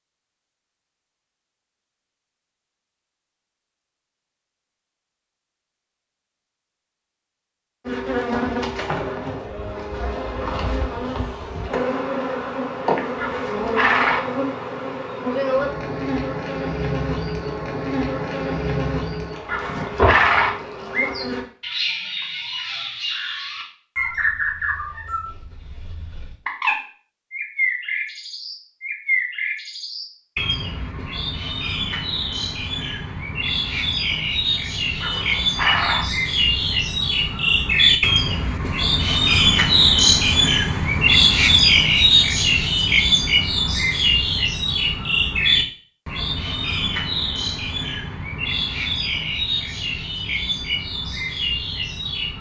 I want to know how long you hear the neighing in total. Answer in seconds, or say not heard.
3 s.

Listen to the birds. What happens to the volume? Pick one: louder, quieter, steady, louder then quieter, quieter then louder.
louder then quieter.